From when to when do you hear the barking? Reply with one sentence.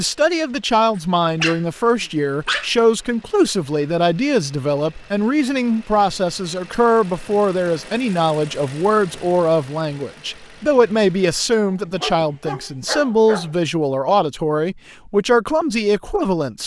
The barking can be heard from 0.9 to 2.7 s and from 11.7 to 13.6 s.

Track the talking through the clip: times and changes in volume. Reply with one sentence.
The talking can be heard from 0.0 to 16.6 s, at a steady volume.